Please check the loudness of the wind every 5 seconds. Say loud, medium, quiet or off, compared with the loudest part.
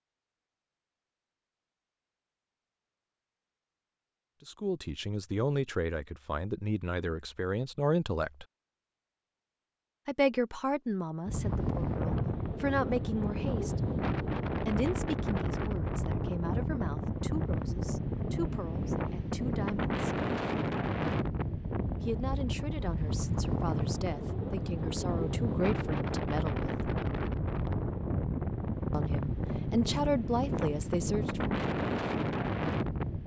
off, off, loud, loud, loud, loud, loud.